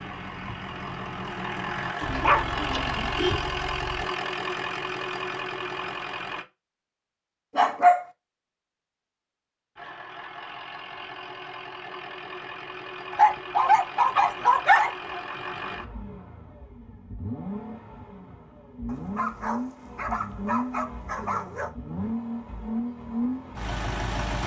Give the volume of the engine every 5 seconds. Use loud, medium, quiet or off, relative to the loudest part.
loud, loud, medium, medium, loud.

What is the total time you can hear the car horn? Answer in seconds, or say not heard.
2 s.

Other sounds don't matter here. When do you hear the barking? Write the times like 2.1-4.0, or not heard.
2.0-3.1, 7.5-8.1, 13.1-15.2, 18.9-21.7.